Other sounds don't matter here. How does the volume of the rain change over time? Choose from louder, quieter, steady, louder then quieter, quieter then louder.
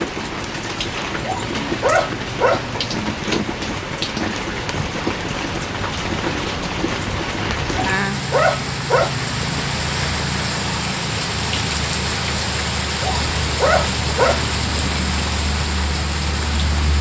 steady.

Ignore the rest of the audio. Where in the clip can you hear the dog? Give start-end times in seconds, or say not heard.
1.2-3.1, 7.7-9.6, 13.0-14.9.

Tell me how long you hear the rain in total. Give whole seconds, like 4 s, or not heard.
17 s.